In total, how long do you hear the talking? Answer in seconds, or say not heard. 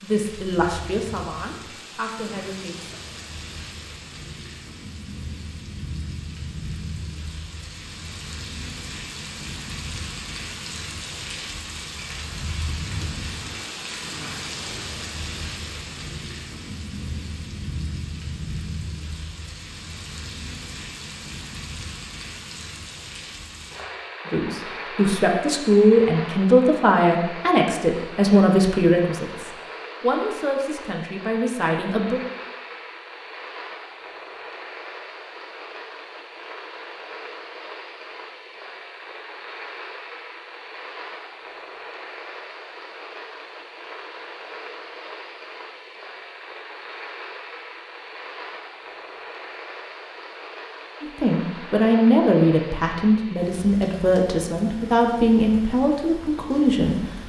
17 s.